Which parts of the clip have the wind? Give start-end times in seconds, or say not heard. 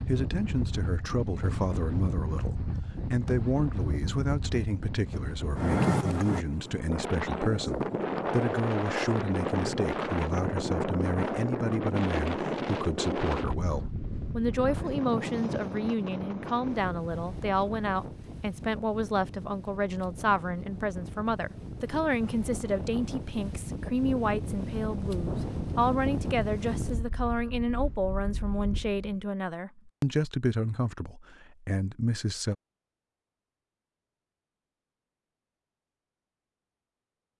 0.0-29.2.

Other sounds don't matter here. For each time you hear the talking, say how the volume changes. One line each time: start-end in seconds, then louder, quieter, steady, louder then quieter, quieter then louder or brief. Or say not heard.
0.1-32.5 steady.